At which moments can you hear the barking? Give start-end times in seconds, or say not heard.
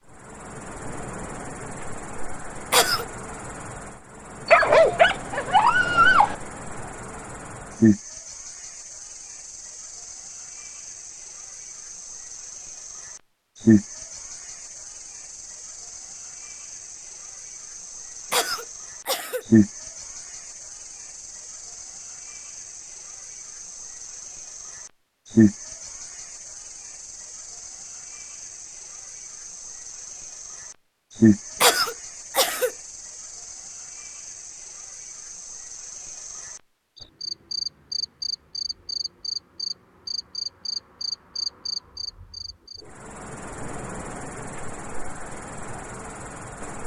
4.5-6.3.